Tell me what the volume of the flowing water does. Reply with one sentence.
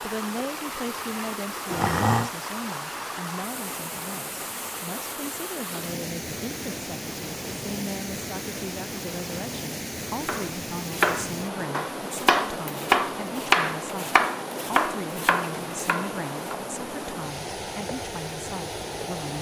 The loudness of the flowing water stays about the same.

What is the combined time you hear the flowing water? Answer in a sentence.
The flowing water can be heard for 19 seconds in total.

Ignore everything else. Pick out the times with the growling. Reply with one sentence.
The growling can be heard from 1.6 to 2.3 s.